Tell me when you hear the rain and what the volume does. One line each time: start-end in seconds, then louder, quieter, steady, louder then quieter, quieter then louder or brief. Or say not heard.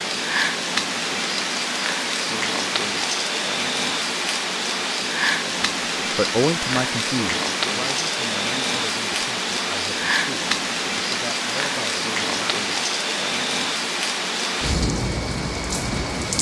0.0-16.3 steady.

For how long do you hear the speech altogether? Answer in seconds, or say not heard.
7 s.